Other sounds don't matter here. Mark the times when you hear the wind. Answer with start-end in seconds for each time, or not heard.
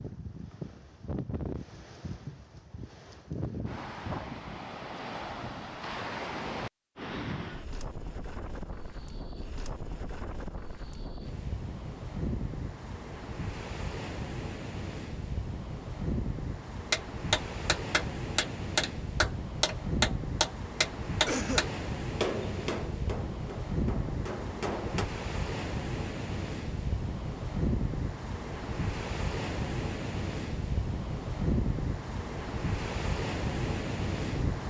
0.0-34.6.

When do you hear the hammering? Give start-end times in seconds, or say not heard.
16.9-25.1.